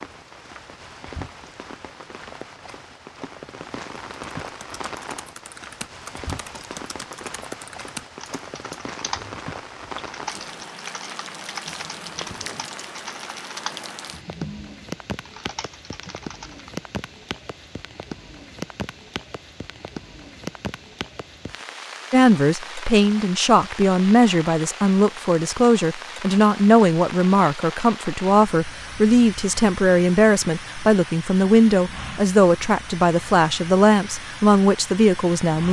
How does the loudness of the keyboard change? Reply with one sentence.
The loudness of the keyboard stays about the same.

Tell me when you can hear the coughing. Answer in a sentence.
You can't hear the coughing here.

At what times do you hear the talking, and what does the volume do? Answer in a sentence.
You can hear the talking from 22.1 to 35.6 s, at a steady volume.